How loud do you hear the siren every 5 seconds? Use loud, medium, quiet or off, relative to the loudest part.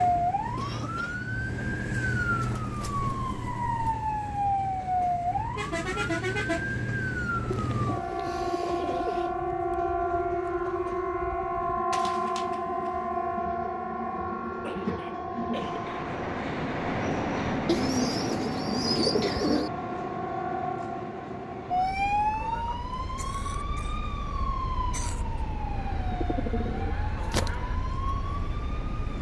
loud, loud, loud, medium, loud, medium.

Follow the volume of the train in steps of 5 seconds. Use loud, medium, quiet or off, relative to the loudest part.
quiet, quiet, medium, loud, medium, medium.